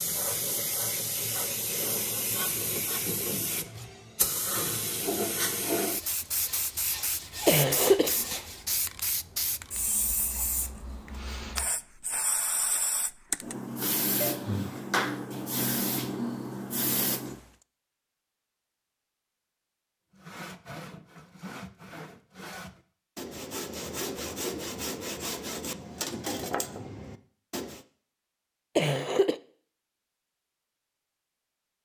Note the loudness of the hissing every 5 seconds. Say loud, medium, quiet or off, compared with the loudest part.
loud, loud, loud, loud, off, off, off.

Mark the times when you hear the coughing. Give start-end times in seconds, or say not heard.
7.5-8.2, 28.8-29.4.